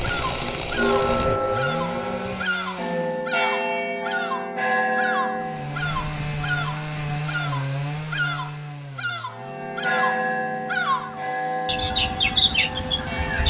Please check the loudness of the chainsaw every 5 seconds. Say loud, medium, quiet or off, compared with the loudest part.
loud, loud, quiet.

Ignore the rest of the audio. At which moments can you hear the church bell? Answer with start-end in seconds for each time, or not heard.
0.1-6.0, 9.3-13.4.